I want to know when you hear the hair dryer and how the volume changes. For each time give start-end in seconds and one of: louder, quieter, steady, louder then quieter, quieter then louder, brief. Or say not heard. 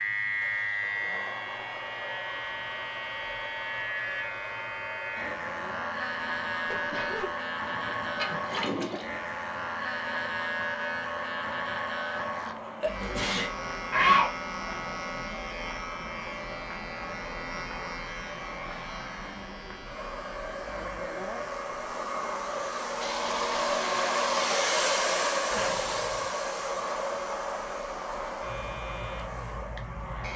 0.0-30.3 louder.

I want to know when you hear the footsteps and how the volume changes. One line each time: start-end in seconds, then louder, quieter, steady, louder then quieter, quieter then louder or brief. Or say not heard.
not heard.